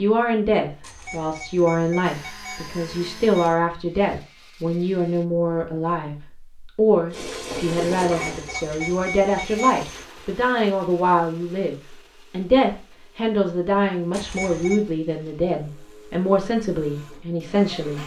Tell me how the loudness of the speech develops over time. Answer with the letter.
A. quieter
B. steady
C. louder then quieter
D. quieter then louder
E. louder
B.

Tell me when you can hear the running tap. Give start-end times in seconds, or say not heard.
7.1-10.1.